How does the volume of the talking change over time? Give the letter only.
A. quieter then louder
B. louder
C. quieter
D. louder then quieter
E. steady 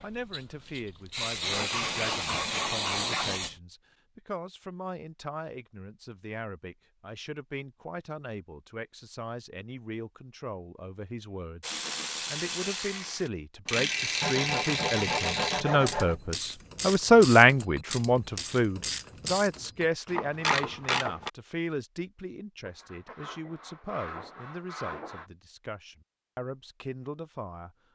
D.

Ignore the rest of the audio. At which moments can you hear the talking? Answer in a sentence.
You can hear the talking from 0.0 to 27.8 s.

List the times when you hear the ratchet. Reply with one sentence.
You can hear the ratchet from 11.6 to 21.3 s.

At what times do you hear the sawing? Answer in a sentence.
You can hear the sawing from 1.5 to 3.3 s, from 14.2 to 16.2 s and from 22.6 to 25.3 s.